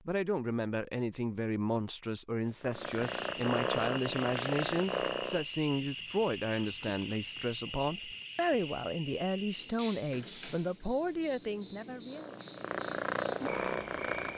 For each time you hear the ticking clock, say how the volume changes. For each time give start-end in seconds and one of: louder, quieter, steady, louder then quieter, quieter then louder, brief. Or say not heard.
not heard.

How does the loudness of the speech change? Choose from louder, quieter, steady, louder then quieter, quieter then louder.
steady.